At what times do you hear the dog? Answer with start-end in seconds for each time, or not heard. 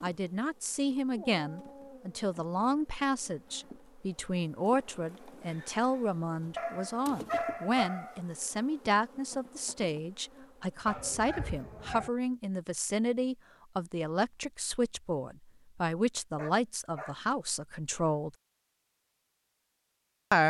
1.1-2.8, 6.5-8.2, 10.8-12.1, 16.4-17.1.